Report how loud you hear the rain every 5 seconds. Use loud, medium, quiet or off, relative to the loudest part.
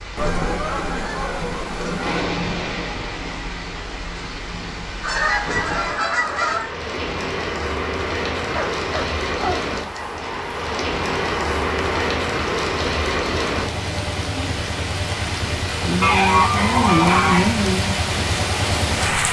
medium, medium, loud, loud.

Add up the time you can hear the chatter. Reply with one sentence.
The chatter can't be heard in this clip.